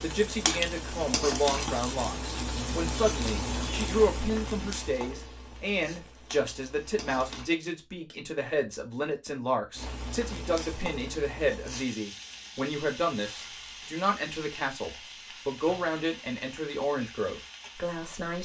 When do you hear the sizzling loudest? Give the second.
1 s.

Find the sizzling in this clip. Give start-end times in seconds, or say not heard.
0.0-7.5, 9.8-18.4.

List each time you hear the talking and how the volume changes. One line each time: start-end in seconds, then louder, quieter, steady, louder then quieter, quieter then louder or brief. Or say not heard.
0.0-18.4 steady.